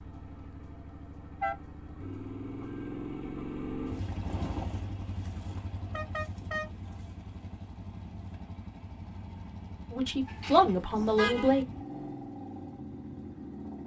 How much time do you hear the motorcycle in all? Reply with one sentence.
You can hear the motorcycle for 14 seconds altogether.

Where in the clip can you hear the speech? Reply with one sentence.
The speech can be heard from 9.9 to 11.7 s.